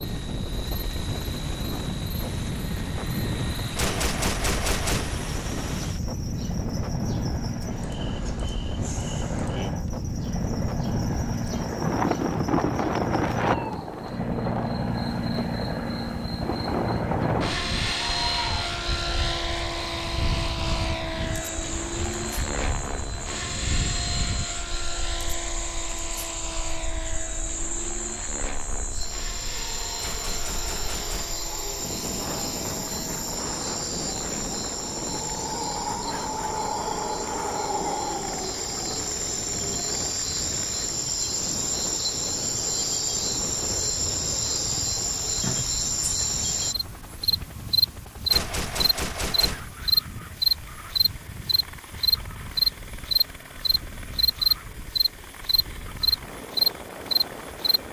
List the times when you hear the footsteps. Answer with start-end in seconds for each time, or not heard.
not heard.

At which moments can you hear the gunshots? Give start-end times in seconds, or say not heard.
3.8-5.2, 29.9-31.4, 48.2-49.8.